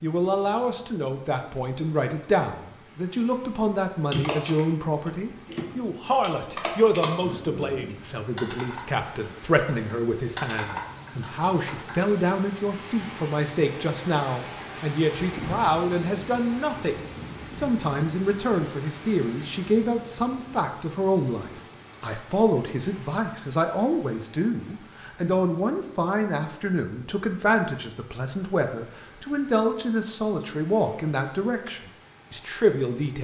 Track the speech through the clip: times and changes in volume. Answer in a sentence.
You can hear the speech from 0.0 to 33.1 s, at a steady volume.